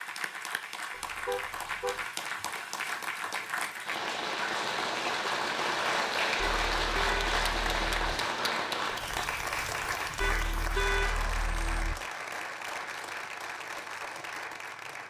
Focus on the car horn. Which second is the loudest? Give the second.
11 s.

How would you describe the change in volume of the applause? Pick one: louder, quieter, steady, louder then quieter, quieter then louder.
louder then quieter.